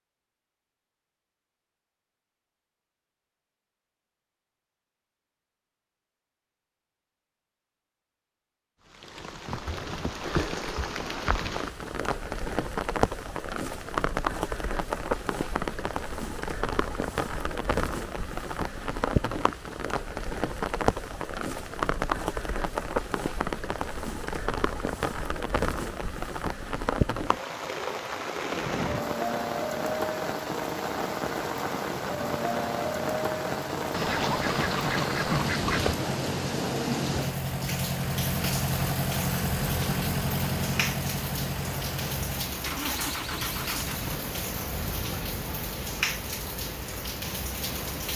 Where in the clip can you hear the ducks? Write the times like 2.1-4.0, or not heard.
33.9-36.0.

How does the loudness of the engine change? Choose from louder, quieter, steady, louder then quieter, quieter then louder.
louder then quieter.